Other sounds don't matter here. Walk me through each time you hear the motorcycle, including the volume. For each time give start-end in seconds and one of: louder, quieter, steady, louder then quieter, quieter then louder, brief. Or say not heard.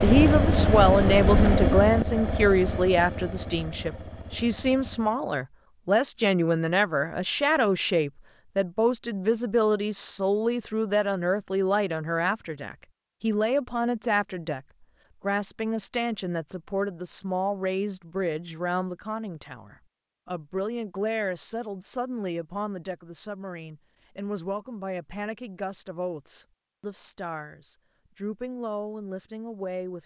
0.0-5.2 quieter.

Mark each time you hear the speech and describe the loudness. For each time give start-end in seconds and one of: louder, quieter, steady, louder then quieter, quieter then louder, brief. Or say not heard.
0.0-30.0 quieter.